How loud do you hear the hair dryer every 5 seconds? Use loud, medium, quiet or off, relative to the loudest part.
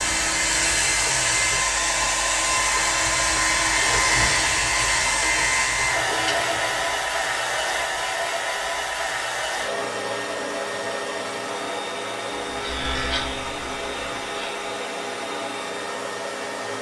loud, loud, medium, medium.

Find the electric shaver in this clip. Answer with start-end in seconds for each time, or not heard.
0.0-7.1, 12.4-14.7.